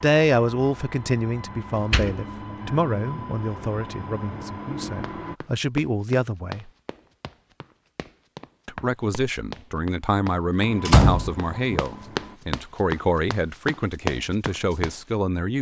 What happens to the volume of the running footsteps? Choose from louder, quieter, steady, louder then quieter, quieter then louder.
quieter then louder.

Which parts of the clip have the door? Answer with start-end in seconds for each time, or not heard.
1.9-2.8, 10.8-11.8.